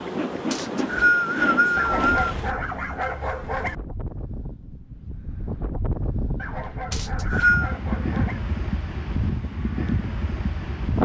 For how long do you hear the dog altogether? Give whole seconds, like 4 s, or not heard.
4 s.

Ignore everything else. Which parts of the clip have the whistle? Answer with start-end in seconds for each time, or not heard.
0.5-2.3, 6.9-7.8.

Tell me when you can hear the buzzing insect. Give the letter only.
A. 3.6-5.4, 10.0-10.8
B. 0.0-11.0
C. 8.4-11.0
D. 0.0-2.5
D.